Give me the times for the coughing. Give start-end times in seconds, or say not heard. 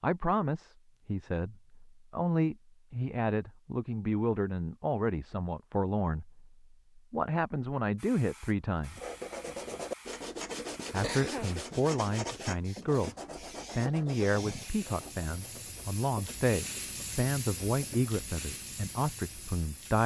10.4-11.6.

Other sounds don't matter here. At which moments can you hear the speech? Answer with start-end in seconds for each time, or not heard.
0.0-9.0, 10.9-13.2, 13.8-20.0.